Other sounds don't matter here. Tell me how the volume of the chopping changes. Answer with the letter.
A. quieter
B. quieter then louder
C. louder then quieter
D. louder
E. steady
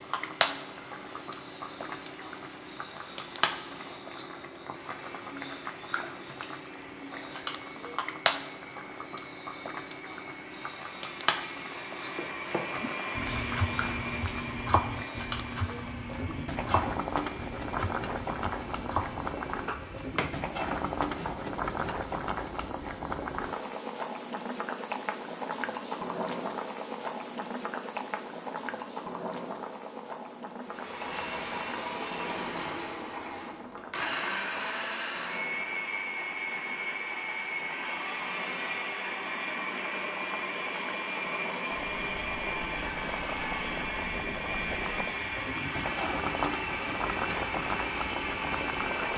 E.